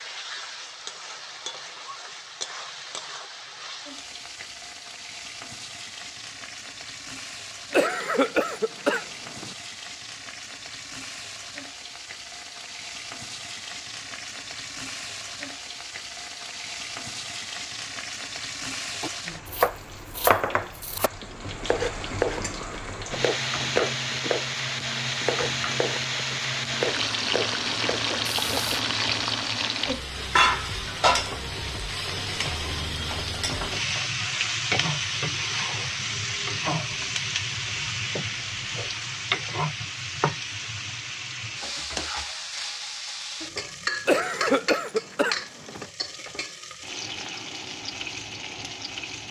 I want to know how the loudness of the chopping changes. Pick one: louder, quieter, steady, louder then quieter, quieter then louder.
quieter.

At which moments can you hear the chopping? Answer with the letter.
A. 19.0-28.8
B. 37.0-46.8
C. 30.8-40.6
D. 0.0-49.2
A.